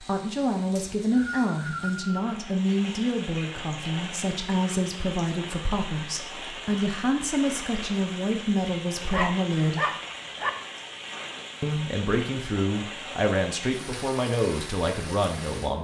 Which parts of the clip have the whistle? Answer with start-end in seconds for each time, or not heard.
0.8-2.4.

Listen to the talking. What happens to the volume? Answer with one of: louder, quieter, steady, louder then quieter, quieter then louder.
steady.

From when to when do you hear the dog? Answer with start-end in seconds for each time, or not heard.
9.1-10.5.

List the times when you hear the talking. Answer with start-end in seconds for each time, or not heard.
0.0-9.8, 11.6-15.7.